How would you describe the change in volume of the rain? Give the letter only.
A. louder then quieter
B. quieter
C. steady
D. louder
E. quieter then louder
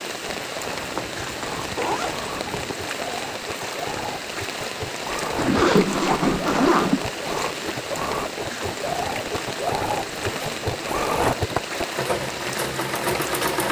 C.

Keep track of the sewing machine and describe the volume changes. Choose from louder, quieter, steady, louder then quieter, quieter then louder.
louder.